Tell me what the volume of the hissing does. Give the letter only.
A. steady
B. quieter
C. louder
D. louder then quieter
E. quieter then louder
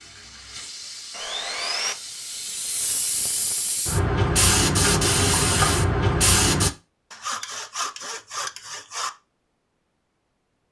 C.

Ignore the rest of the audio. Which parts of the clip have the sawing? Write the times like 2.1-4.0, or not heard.
1.1-1.9, 7.1-9.1.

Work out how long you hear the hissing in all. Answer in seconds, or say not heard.
7 s.